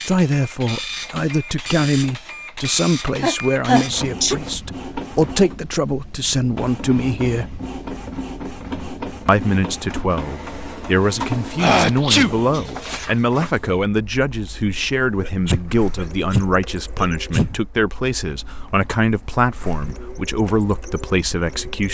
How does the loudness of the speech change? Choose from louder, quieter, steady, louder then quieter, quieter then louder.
steady.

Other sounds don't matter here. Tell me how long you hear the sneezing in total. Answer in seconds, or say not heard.
4 s.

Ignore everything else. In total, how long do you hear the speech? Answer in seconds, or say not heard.
20 s.